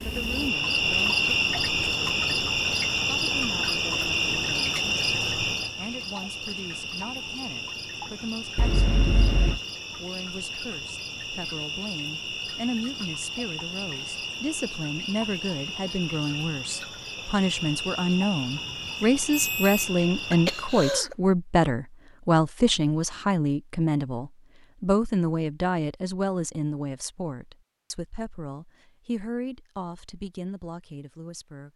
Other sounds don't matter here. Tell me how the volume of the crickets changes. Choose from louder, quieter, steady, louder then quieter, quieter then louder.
quieter.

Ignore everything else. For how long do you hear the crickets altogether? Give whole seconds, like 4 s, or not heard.
21 s.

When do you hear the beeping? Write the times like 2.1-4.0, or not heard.
8.6-9.6, 18.5-19.9.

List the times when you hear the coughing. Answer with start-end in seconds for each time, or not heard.
20.3-21.1.